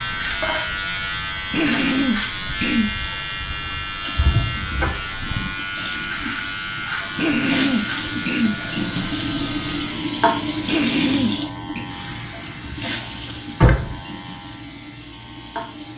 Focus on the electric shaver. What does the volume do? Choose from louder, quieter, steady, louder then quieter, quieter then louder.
quieter.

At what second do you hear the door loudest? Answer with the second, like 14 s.
14 s.